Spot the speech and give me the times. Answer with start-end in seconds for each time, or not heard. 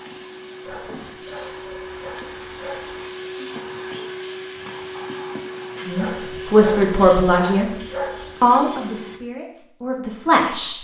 5.8-7.7, 8.4-10.7.